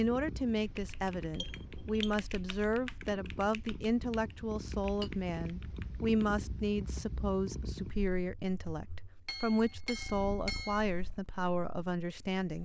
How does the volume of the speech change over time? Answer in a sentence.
The loudness of the speech stays about the same.